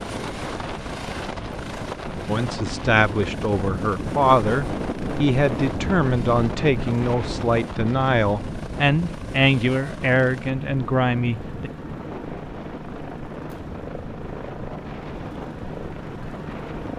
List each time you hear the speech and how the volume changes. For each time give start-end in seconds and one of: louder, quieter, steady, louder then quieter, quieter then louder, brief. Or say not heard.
2.2-11.7 steady.